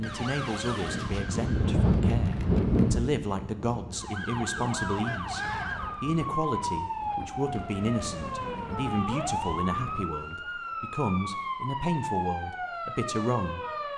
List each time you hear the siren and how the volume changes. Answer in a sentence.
You can hear the siren briefly from 0.0 to 1.8 s; and from 4.0 to 13.9 s, at a steady volume.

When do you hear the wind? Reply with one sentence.
The wind can be heard from 0.0 to 10.2 s.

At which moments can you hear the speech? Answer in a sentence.
You can hear the speech from 0.0 to 13.7 s.